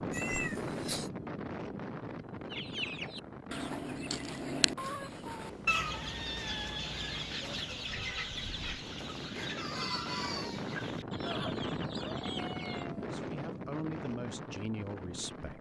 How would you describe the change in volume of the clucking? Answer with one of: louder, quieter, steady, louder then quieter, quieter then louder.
quieter.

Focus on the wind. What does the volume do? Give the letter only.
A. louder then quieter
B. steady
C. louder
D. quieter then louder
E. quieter
D.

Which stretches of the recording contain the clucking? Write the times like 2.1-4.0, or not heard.
2.5-12.8.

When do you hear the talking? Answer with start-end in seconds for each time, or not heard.
12.9-15.5.